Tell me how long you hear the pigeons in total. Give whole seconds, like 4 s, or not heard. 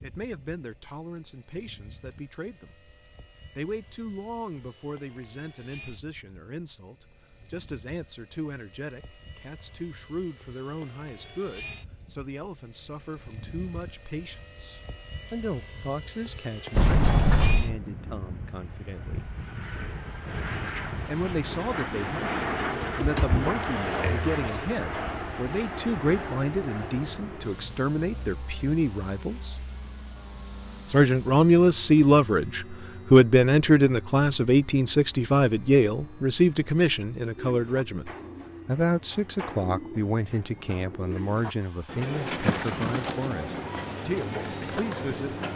8 s.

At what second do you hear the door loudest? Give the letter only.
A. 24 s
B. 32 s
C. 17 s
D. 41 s
C.